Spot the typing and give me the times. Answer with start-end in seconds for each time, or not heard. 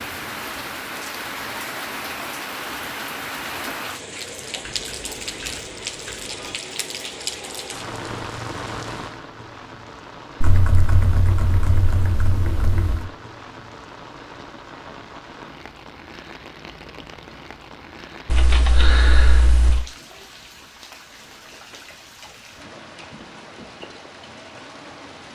4.6-6.5, 10.4-13.1, 18.2-19.9.